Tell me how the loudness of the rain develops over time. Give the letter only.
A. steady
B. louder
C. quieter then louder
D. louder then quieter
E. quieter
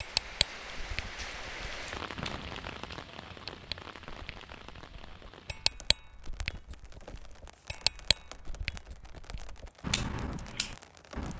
E.